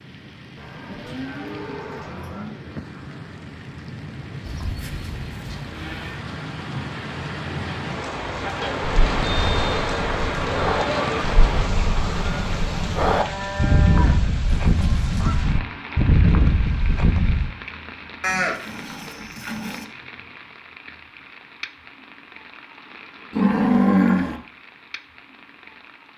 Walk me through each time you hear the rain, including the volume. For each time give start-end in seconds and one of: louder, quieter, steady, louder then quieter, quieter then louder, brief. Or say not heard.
0.0-26.1 louder then quieter.